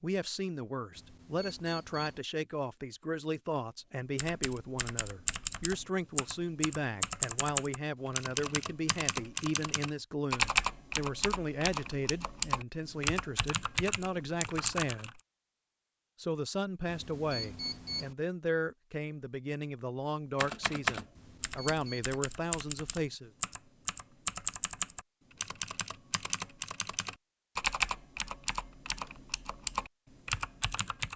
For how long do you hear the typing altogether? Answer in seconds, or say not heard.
22 s.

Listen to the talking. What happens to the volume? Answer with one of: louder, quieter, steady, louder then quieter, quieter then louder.
steady.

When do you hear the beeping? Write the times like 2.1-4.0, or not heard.
0.9-2.2, 16.9-18.1, 21.1-22.1.